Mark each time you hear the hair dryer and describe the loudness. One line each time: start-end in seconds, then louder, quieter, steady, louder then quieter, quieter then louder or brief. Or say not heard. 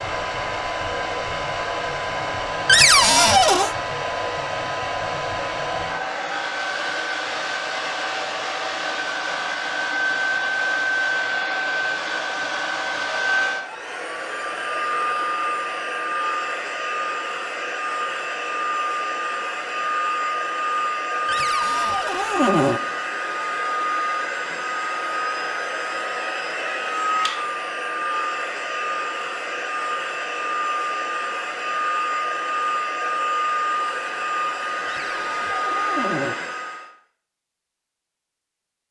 0.0-36.9 steady.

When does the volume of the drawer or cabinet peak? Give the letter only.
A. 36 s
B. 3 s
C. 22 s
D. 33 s
B.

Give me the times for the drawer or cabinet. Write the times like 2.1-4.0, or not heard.
2.6-3.8, 21.2-22.8, 34.9-36.4.